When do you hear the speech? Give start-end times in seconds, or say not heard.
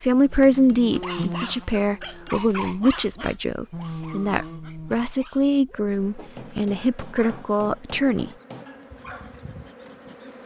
0.0-8.3.